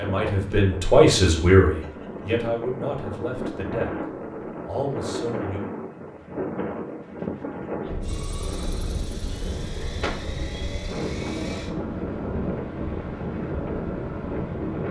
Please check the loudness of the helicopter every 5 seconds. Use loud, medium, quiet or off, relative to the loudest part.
off, loud, loud.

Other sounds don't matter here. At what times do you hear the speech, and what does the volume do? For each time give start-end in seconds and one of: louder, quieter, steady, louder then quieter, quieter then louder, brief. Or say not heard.
0.0-4.0 quieter
4.7-5.6 brief.